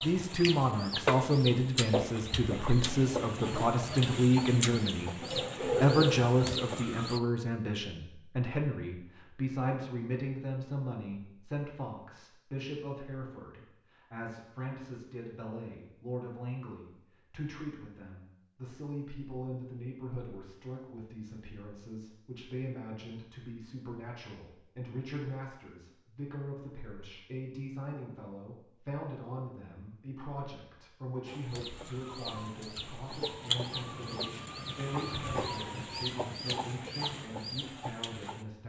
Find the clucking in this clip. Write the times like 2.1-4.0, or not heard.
0.0-7.2, 31.2-38.5.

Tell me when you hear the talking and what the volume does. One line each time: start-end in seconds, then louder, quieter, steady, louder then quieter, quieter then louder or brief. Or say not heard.
0.0-38.6 quieter.